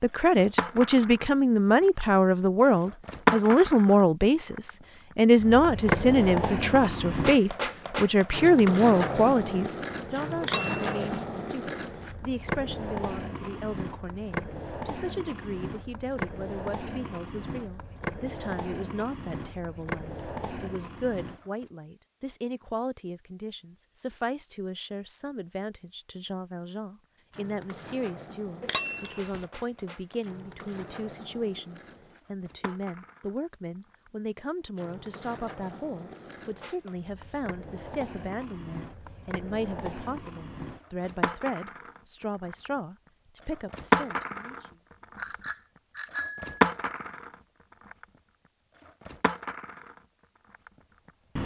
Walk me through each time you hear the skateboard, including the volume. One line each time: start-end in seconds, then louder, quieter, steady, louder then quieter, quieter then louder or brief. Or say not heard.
0.3-21.6 quieter
27.3-51.4 louder.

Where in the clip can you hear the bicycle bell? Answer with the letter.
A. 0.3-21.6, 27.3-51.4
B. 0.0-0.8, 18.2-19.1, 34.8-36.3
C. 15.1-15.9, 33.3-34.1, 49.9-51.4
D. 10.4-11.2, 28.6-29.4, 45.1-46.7
D.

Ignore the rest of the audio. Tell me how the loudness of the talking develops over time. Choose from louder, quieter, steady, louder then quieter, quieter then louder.
quieter.